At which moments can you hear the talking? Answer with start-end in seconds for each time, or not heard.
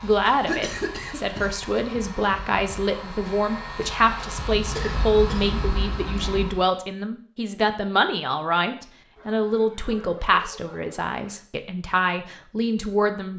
0.0-13.3.